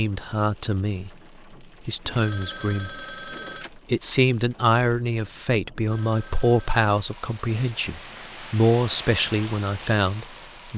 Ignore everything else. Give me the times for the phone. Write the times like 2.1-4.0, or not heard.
2.0-3.7, 5.8-7.0.